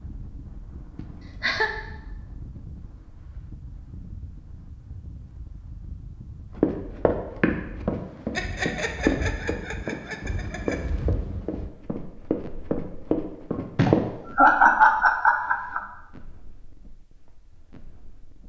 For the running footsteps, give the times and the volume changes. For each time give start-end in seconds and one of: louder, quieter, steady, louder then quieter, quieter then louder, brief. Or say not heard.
6.5-14.0 quieter then louder.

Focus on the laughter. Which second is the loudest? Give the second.
15 s.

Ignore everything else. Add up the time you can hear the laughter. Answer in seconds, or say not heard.
5 s.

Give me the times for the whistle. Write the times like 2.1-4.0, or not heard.
not heard.